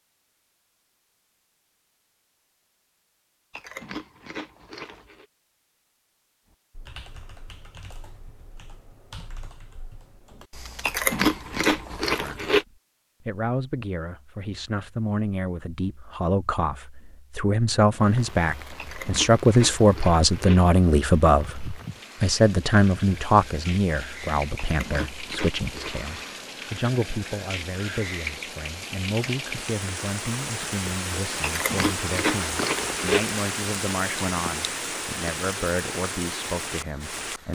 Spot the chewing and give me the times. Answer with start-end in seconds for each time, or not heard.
3.5-5.2, 10.8-12.7, 18.8-20.6, 24.6-26.1, 31.4-33.3.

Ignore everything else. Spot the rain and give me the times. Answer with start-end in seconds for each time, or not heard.
17.9-37.5.